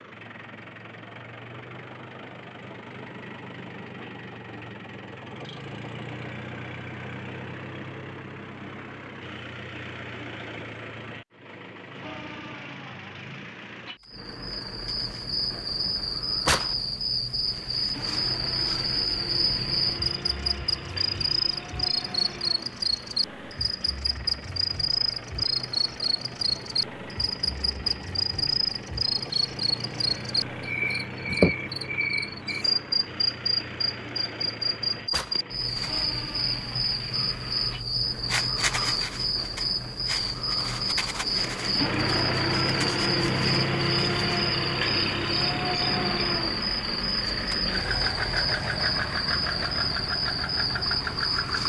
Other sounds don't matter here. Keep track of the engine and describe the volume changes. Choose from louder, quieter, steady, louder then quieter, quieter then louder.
louder.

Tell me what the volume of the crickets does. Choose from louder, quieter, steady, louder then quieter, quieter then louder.
steady.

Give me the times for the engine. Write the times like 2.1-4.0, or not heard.
0.0-51.6.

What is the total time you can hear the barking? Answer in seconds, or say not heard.
not heard.